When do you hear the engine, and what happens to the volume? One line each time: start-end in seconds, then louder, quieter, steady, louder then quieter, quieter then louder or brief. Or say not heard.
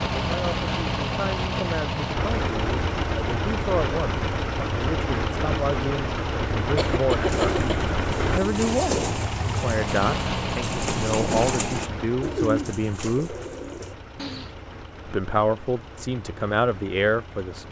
0.0-17.6 quieter.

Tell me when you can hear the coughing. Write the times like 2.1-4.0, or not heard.
6.8-7.9.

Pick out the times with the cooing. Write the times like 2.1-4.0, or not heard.
7.2-14.6.